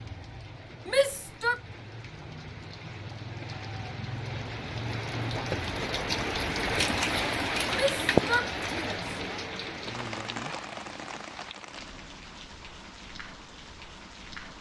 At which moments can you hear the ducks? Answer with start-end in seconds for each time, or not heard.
not heard.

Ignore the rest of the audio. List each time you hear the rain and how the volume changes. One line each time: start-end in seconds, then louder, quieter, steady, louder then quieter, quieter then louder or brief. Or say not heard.
0.0-14.5 louder then quieter.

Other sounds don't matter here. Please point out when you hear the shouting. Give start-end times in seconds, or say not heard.
0.8-1.6, 7.7-9.4.